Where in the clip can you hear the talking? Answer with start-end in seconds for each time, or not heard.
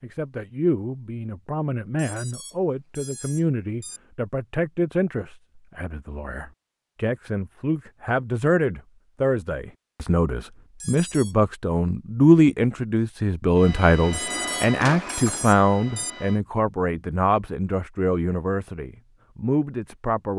0.0-20.3.